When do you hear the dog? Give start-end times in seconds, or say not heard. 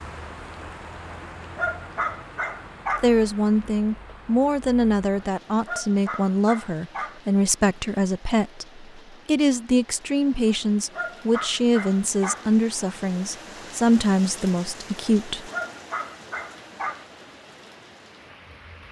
1.1-3.1, 5.2-7.2, 10.4-12.5, 15.3-17.1.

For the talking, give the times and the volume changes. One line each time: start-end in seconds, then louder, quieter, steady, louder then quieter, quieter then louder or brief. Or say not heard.
3.0-15.5 steady.